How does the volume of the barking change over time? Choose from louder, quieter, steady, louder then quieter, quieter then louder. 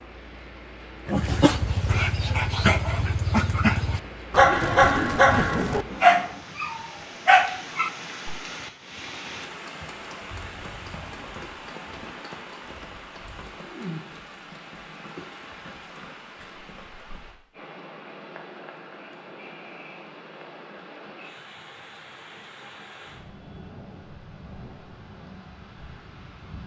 louder.